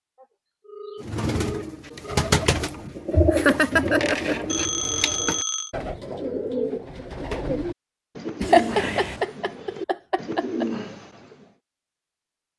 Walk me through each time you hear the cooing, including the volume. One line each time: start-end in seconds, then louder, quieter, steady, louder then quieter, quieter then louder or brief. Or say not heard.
1.0-11.4 quieter.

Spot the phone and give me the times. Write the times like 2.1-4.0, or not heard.
0.1-2.3, 4.5-5.7, 8.4-9.2.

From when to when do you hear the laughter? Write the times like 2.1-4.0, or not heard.
2.6-4.5, 8.4-10.7.